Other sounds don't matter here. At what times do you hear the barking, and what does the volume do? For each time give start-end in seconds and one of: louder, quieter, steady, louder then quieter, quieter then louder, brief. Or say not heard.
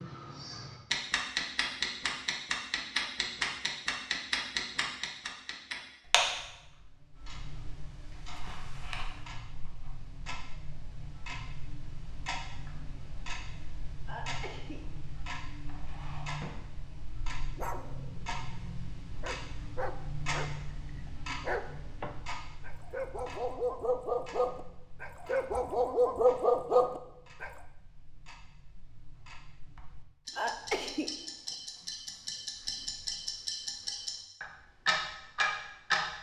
17.6-27.5 louder.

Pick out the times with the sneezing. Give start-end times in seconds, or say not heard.
14.1-14.8, 30.4-31.1.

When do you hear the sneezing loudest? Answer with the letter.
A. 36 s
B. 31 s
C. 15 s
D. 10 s
B.